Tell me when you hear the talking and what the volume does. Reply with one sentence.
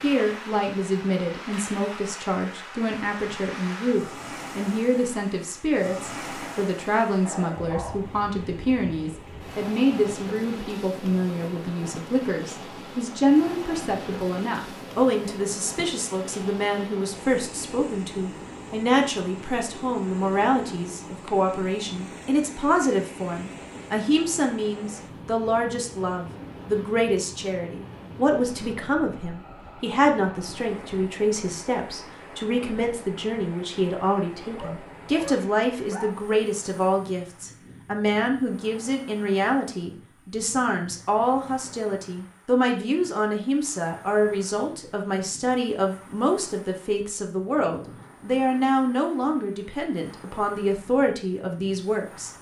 You can hear the talking from 0.0 to 52.3 s, at a steady volume.